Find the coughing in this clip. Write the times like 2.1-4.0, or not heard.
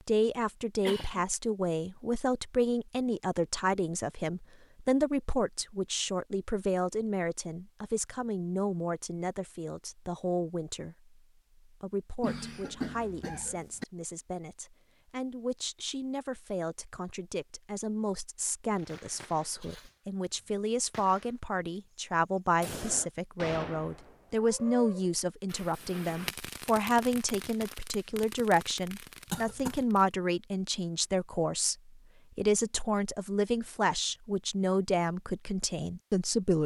0.8-1.2, 12.2-13.8, 29.3-29.9.